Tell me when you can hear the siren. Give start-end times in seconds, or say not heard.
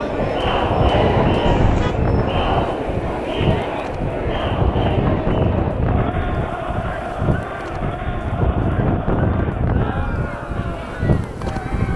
not heard.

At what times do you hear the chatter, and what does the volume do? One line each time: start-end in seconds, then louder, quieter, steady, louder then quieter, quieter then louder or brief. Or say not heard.
0.0-11.9 quieter.